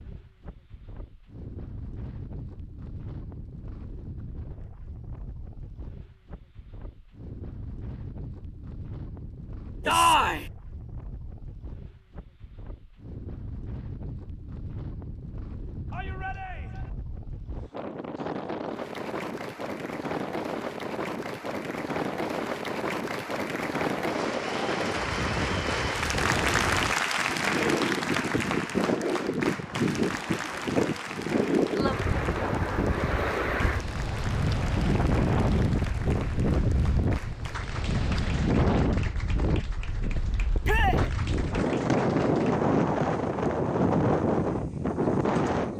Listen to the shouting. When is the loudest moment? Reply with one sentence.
The volume of the shouting peaks at 10 seconds.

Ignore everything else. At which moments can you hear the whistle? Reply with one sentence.
You can't hear the whistle here.